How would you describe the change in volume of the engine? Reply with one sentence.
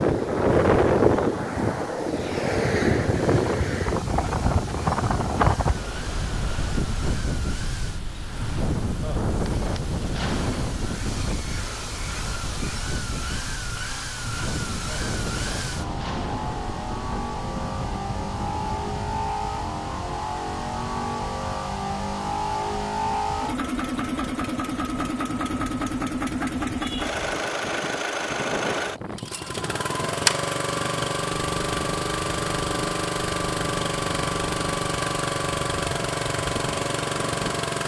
The volume of the engine goes up.